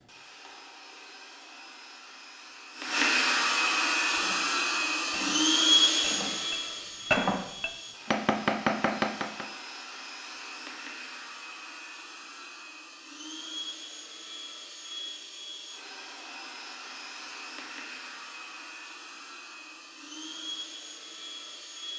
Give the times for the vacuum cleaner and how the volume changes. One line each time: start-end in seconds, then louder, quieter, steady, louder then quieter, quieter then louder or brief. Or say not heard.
0.0-21.9 quieter.